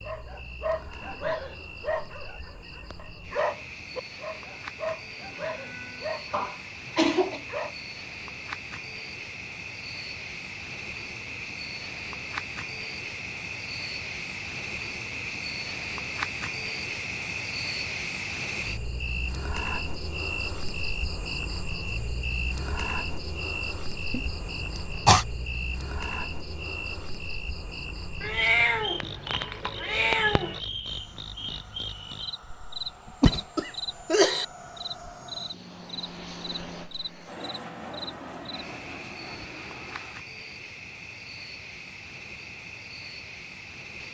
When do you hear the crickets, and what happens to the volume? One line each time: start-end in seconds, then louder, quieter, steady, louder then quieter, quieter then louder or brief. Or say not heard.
0.0-44.0 louder then quieter.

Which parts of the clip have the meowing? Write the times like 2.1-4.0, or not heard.
28.2-30.6.